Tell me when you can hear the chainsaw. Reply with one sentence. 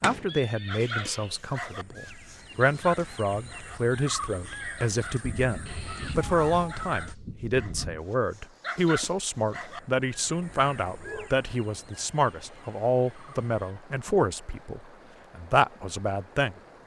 You can't hear the chainsaw here.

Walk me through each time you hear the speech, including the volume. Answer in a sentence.
The speech can be heard from 0.0 to 16.6 s, at a steady volume.